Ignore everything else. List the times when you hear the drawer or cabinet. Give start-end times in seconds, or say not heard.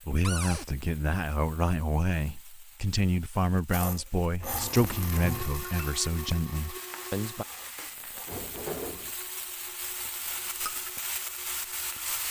0.2-0.7, 4.4-5.7, 8.2-9.2.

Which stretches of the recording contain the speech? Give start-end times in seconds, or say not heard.
0.1-7.5.